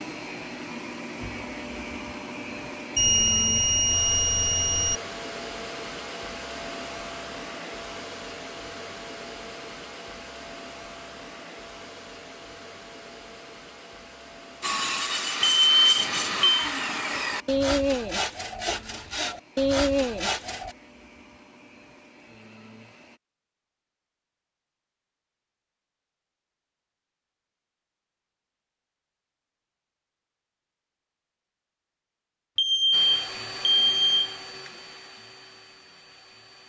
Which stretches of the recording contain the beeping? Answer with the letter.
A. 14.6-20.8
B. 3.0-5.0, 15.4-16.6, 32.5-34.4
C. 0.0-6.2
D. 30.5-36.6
B.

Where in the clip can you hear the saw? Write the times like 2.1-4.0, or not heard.
14.6-20.8.